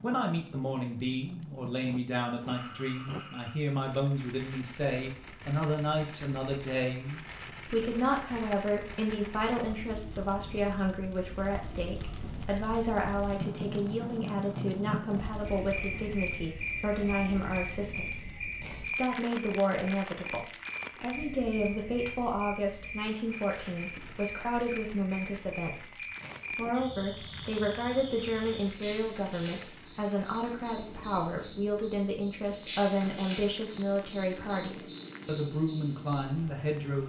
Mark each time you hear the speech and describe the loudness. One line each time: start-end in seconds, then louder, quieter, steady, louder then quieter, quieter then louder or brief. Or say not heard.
0.0-37.0 steady.